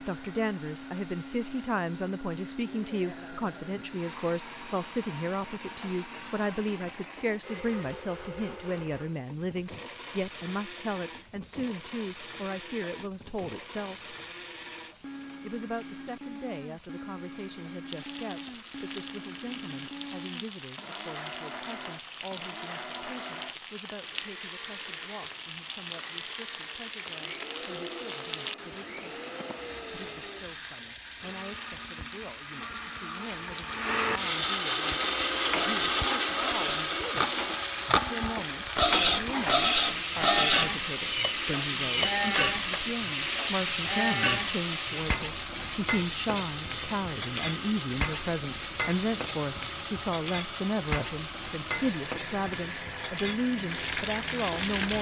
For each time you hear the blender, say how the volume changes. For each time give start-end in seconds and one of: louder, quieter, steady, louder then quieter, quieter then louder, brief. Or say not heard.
0.0-54.9 louder then quieter.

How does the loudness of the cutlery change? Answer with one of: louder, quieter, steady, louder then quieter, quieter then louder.
louder.